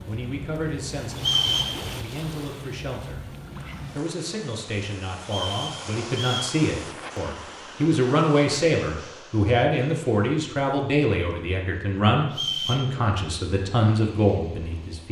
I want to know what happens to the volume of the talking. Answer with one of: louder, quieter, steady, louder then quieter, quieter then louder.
louder.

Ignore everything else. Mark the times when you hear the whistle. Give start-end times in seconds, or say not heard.
1.1-1.8, 5.2-6.5, 12.3-12.8.